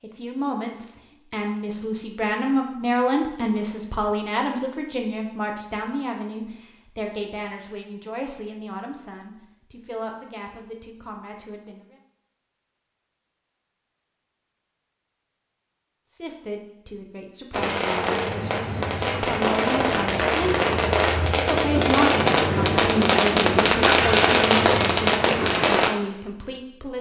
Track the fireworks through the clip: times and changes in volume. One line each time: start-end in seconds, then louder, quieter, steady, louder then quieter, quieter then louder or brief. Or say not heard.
17.5-25.9 louder.